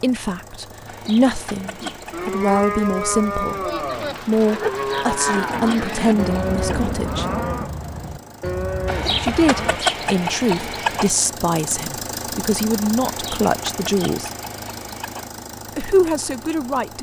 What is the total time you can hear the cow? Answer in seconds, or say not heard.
8 s.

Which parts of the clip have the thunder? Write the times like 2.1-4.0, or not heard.
3.9-7.7.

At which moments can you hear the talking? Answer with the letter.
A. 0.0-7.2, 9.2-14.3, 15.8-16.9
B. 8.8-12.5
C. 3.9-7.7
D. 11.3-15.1
A.